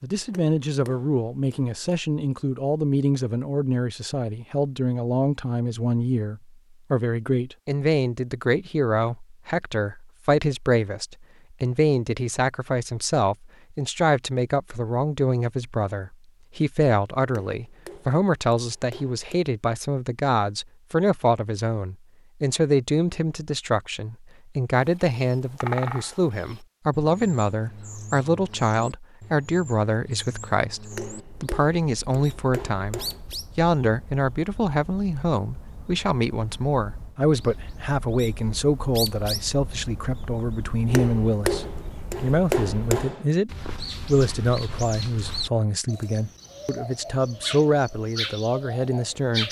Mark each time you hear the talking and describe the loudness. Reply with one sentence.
You can hear the talking from 0.0 to 49.4 s, at a steady volume.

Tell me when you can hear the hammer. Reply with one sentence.
The hammer can be heard from 0.2 to 1.8 s, from 17.2 to 19.4 s, from 30.9 to 33.4 s and from 40.9 to 43.2 s.